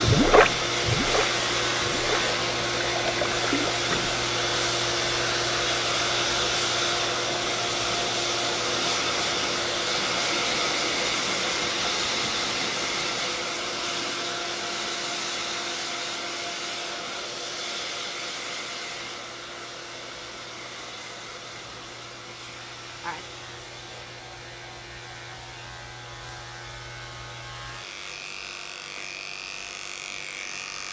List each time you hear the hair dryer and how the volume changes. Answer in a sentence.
You can hear the hair dryer from 0.0 to 30.8 s, getting quieter.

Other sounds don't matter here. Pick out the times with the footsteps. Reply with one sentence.
The footsteps can't be heard in this clip.